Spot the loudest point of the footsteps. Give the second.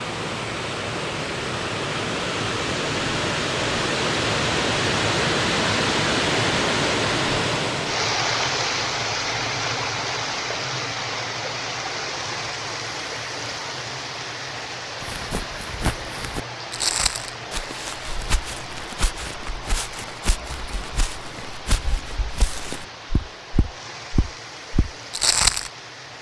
25 s.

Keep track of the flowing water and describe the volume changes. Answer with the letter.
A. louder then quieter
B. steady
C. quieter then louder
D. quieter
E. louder
D.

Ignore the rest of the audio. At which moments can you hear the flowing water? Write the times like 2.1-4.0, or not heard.
0.0-26.1.